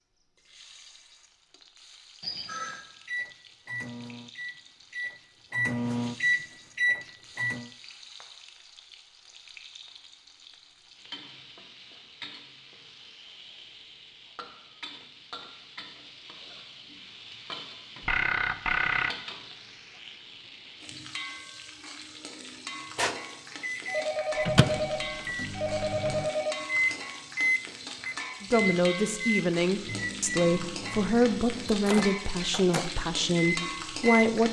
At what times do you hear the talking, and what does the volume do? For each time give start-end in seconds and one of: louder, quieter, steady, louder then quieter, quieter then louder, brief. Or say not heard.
28.4-34.4 steady.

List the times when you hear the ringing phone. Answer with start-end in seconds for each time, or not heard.
2.2-2.8, 18.0-19.1, 23.9-26.6.